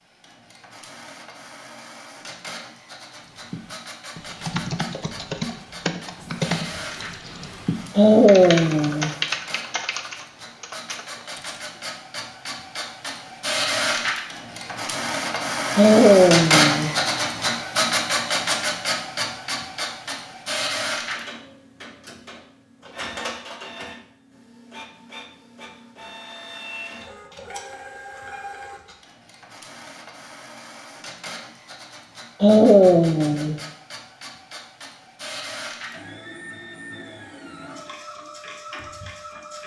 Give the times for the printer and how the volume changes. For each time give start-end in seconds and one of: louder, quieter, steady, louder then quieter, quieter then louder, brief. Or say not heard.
0.0-39.6 louder then quieter.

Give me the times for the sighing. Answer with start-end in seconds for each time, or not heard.
8.0-9.2, 15.8-16.9, 32.4-33.6.